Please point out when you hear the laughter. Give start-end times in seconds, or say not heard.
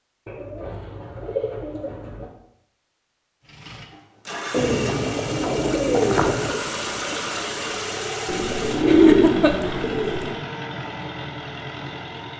8.8-9.9.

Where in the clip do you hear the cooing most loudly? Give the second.
9 s.